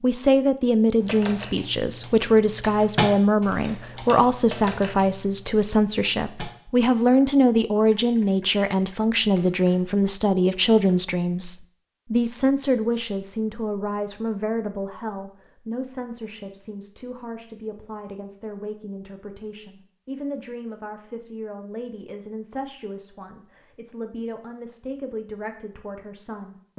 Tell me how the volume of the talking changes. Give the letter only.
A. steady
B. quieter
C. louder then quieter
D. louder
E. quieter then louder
B.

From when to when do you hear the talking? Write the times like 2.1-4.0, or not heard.
0.0-26.7.